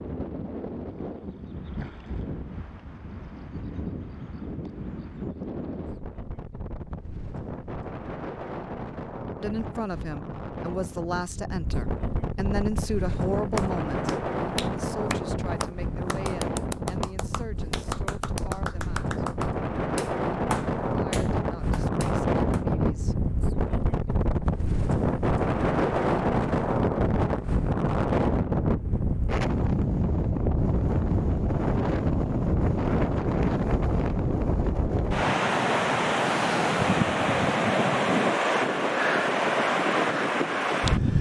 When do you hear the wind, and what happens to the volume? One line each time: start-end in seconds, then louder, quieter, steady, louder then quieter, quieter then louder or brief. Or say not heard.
0.0-41.1 louder.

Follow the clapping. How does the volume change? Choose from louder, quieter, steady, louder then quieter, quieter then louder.
quieter.